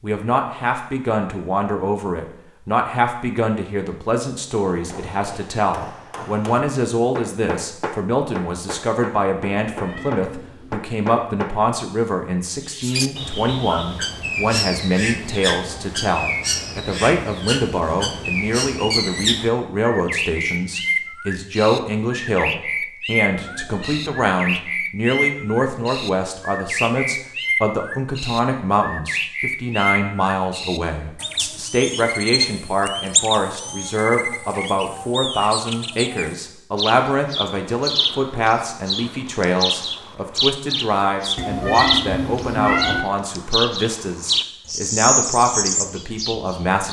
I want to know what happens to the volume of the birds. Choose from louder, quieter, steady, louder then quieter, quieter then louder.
steady.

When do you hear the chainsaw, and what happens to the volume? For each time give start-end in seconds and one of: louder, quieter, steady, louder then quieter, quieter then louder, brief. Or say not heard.
not heard.